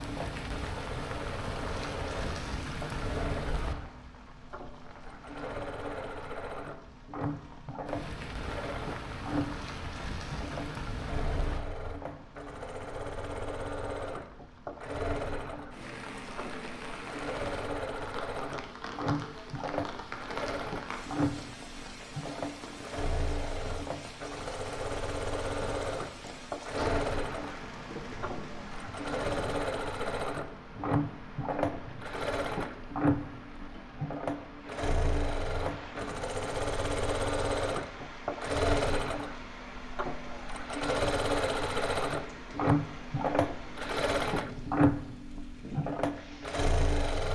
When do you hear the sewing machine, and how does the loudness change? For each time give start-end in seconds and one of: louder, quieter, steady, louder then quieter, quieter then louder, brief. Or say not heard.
0.0-47.3 louder.